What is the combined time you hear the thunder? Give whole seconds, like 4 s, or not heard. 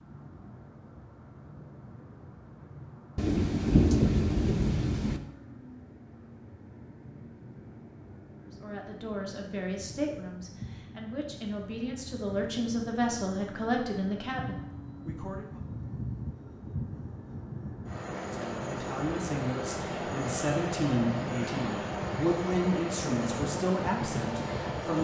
2 s.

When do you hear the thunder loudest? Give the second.
4 s.